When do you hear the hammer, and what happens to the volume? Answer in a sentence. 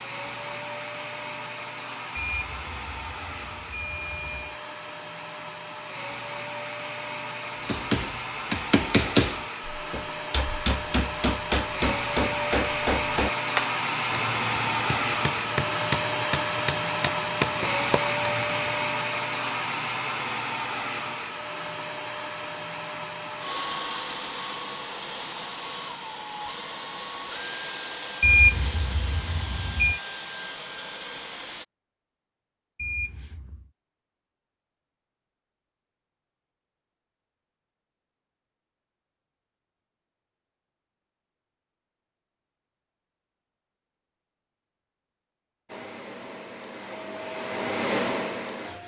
You can hear the hammer from 7.7 to 18.7 s, getting quieter.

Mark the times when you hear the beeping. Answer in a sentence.
The beeping can be heard from 2.1 to 4.6 s, from 28.2 to 30.0 s and from 32.8 to 33.7 s.